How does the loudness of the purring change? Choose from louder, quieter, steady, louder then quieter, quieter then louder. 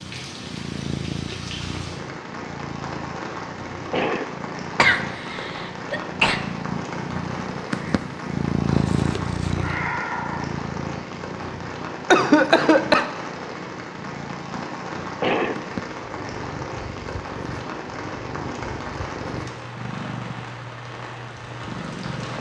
louder then quieter.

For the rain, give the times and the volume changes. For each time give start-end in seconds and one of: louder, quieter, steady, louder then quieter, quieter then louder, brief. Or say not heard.
0.0-22.3 steady.